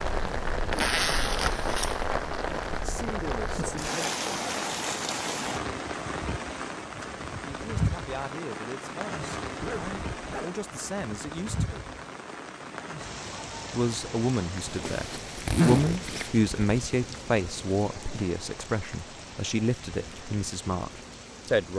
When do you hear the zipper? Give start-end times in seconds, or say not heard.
0.7-1.9, 9.6-10.5, 14.7-17.1.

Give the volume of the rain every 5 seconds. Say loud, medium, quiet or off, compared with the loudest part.
loud, loud, medium, medium, quiet.